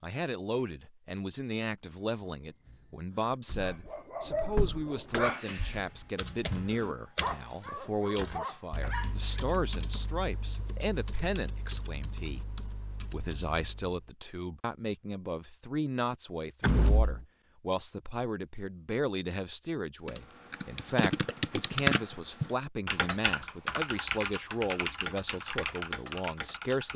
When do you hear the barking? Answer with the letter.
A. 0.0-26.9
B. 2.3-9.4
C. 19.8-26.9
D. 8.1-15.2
B.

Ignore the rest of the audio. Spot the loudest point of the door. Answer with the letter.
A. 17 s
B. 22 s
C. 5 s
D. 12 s
A.